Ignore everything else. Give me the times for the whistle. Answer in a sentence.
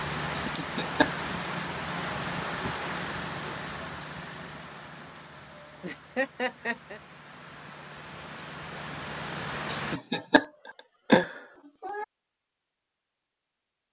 The whistle can't be heard in this clip.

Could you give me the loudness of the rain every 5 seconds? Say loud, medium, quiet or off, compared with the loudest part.
loud, medium, off.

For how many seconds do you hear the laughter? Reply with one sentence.
The laughter can be heard for 4 seconds in total.